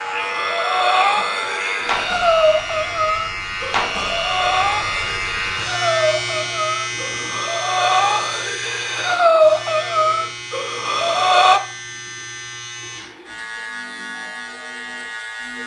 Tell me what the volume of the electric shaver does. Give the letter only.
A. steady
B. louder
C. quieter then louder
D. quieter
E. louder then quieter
D.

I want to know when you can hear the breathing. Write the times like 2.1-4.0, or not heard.
0.1-11.6.